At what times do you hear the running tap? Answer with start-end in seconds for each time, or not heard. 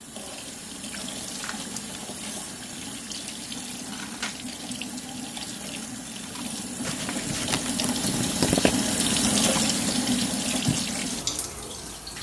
0.0-12.1.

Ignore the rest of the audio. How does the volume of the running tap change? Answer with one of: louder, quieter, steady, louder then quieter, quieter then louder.
louder.